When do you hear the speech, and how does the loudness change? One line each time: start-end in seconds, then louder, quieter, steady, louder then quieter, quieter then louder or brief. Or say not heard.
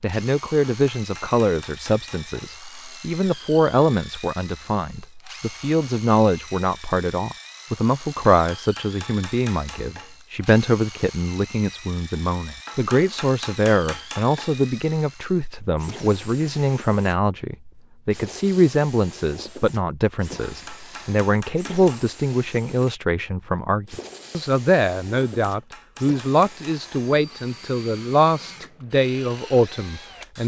0.0-30.4 steady.